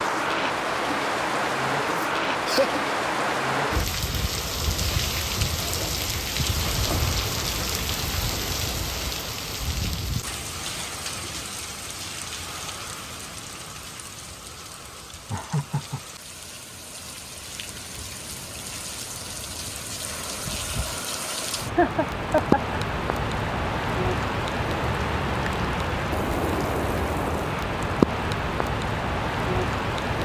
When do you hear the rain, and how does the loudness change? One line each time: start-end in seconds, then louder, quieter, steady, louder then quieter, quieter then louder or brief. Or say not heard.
0.0-30.2 quieter then louder.